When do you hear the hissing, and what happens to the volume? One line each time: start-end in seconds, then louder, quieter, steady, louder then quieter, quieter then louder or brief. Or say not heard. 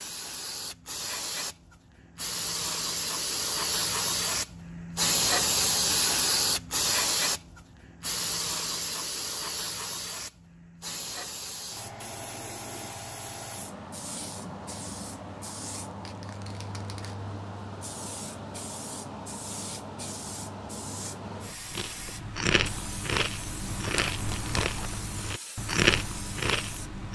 0.0-26.9 quieter.